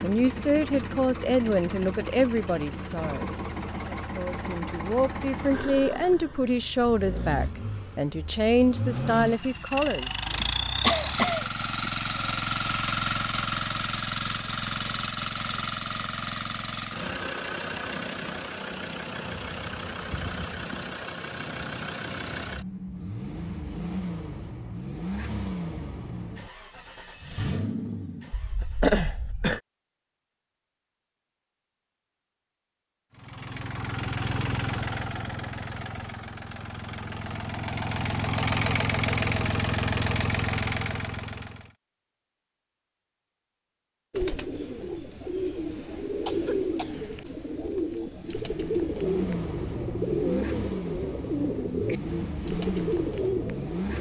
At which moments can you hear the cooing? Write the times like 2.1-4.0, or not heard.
44.1-53.9.